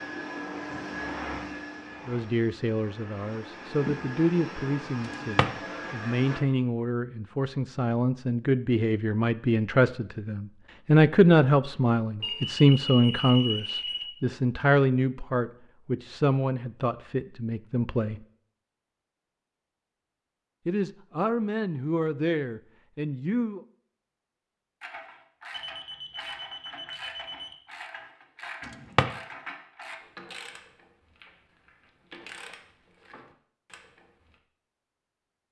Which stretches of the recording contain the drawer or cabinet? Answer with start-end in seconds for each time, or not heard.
5.0-5.5, 28.6-29.1.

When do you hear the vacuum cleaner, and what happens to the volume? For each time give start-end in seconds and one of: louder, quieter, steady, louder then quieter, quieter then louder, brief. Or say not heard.
0.0-6.4 quieter then louder.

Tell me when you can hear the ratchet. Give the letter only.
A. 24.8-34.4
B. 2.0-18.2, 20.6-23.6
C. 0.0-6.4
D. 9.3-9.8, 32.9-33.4
A.